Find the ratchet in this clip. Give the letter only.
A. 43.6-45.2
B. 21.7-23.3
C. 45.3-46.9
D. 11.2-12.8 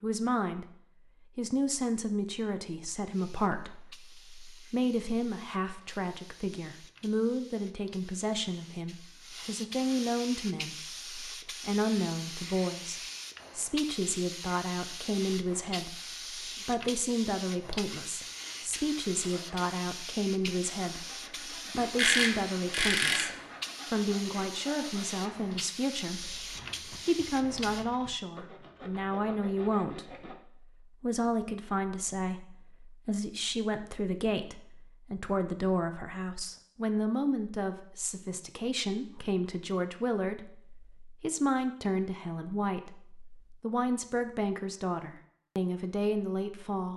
B.